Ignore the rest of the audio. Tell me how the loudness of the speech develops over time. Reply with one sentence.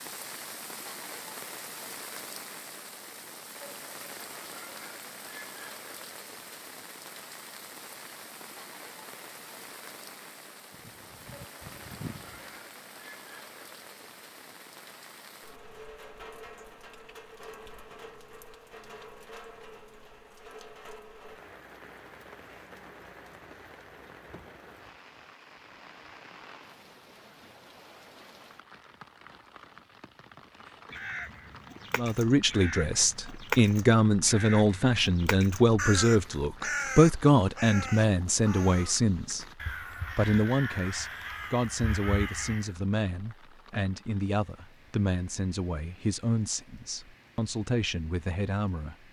The volume of the speech goes down.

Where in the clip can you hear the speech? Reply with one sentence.
You can hear the speech from 31.9 to 39.5 s and from 40.1 to 49.0 s.